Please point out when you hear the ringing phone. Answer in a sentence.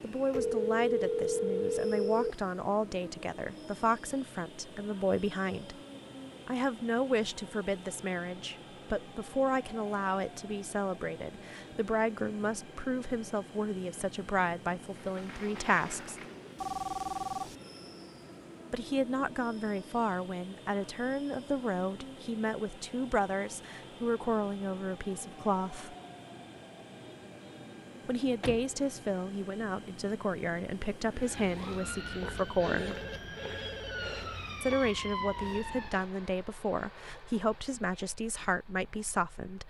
The ringing phone can be heard from 0.3 to 2.4 s, from 16.6 to 17.6 s and from 32.8 to 34.2 s.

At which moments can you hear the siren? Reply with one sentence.
You can hear the siren from 31.1 to 36.1 s.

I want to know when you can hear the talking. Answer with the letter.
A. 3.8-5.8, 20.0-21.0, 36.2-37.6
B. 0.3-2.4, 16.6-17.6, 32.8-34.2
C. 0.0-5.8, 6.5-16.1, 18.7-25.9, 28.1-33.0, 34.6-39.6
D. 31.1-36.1
C.